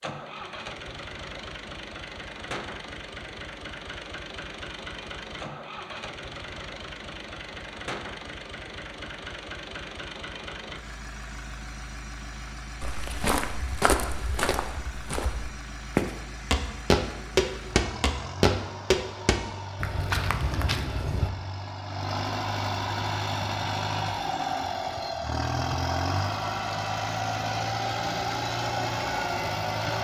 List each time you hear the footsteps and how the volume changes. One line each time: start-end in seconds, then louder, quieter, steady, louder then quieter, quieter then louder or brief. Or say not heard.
12.8-21.3 louder then quieter.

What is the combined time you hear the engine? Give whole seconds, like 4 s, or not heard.
30 s.